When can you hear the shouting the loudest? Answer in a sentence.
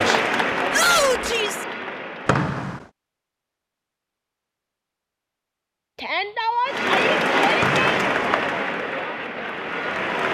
The loudest moment of the shouting is at 1 second.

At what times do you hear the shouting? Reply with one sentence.
You can hear the shouting from 0.7 to 1.6 s and from 6.0 to 8.0 s.